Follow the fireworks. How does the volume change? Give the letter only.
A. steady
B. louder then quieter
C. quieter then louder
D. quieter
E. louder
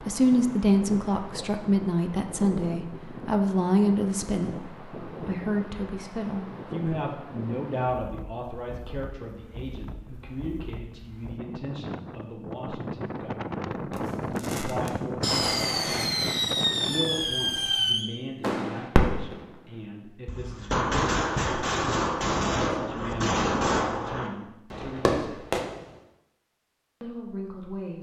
A.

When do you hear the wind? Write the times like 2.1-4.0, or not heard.
0.0-17.9.